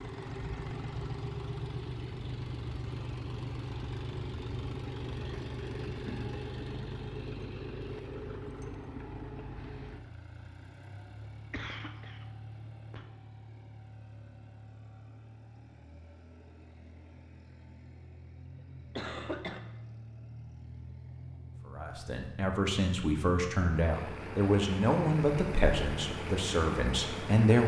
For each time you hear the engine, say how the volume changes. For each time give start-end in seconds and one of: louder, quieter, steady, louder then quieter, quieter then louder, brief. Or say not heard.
0.0-27.6 quieter then louder.